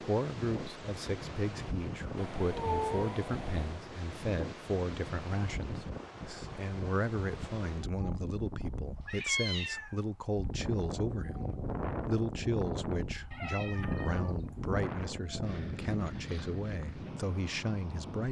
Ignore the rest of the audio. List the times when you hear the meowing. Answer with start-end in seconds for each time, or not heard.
2.1-3.8, 9.1-9.9, 13.3-14.7.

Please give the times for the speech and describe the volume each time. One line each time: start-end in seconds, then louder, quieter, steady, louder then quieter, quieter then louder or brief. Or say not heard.
0.0-18.2 steady.